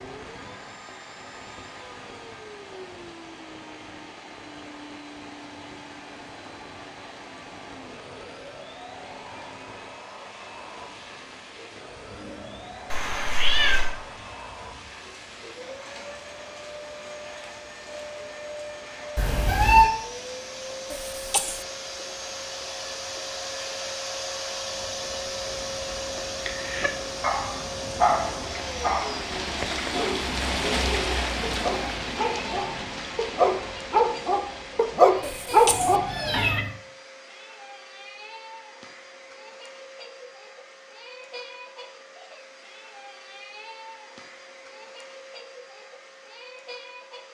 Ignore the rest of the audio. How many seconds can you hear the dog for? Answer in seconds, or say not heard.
10 s.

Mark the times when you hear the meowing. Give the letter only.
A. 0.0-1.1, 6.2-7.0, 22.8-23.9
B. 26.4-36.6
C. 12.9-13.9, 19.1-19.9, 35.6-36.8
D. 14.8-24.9
C.